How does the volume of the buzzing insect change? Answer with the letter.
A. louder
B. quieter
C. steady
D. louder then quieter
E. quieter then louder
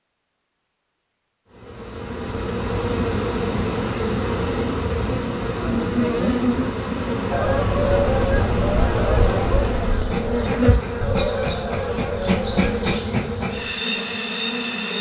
C.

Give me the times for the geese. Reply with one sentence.
You can hear the geese from 7.3 to 12.9 s.